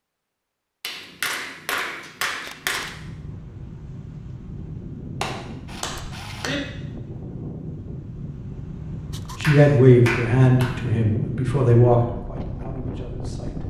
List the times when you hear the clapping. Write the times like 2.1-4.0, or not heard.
0.8-2.9, 5.2-6.5, 9.4-10.8.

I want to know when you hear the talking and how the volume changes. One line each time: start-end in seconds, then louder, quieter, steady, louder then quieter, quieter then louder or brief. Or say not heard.
9.4-13.6 quieter.